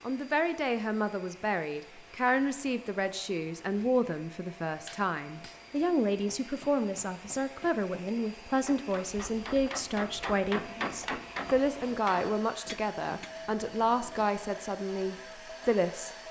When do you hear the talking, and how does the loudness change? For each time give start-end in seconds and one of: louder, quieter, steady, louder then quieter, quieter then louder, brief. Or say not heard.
0.0-16.1 steady.